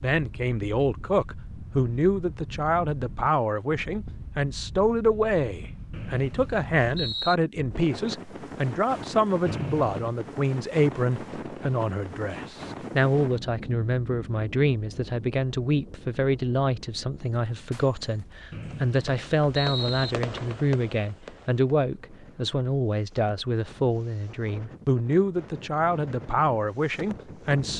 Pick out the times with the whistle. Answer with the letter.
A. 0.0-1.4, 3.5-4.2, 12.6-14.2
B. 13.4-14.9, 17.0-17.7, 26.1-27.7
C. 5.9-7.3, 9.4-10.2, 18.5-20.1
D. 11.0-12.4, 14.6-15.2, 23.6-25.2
C.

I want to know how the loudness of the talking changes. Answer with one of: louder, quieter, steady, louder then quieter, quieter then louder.
steady.